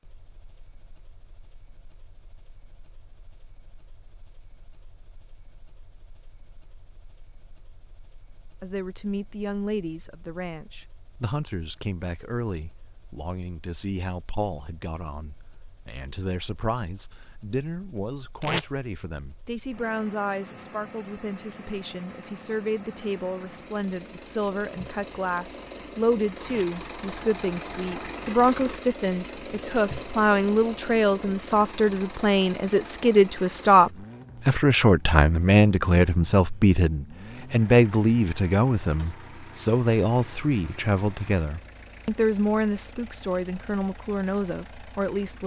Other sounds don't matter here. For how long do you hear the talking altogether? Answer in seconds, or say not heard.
37 s.